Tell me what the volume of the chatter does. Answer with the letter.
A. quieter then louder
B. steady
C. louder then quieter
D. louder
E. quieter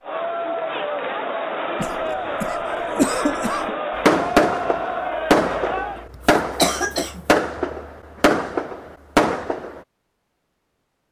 B.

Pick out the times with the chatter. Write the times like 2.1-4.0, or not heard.
0.0-6.0.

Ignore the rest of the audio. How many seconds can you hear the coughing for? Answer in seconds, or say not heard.
3 s.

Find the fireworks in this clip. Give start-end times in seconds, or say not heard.
4.0-9.8.